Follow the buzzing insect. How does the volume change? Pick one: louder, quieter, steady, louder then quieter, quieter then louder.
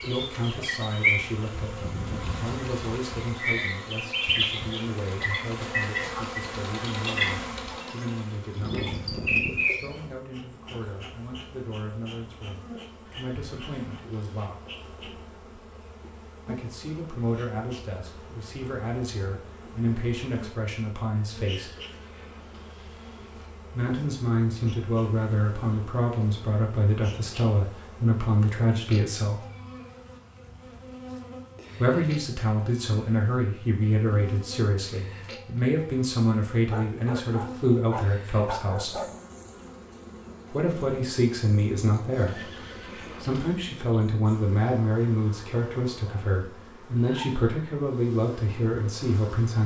quieter.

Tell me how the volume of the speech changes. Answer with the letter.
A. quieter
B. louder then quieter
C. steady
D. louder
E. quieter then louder
D.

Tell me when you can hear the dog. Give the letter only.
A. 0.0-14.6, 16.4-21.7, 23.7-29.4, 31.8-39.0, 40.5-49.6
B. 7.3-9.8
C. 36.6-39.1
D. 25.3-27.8
C.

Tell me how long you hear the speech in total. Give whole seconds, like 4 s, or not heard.
42 s.